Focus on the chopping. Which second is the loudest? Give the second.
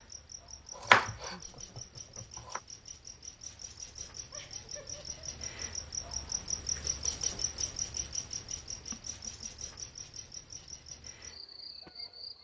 1 s.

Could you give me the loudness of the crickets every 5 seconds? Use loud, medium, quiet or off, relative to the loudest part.
medium, loud, medium.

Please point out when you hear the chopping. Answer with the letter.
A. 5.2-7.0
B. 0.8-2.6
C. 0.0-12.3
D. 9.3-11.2
B.